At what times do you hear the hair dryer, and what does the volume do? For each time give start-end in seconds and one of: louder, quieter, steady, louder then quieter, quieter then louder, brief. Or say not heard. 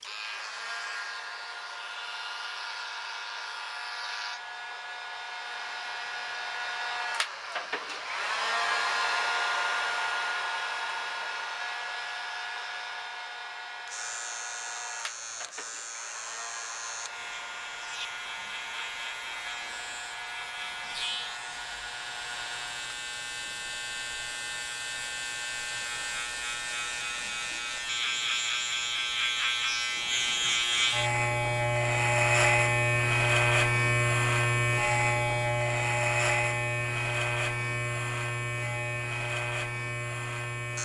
0.0-22.9 louder then quieter.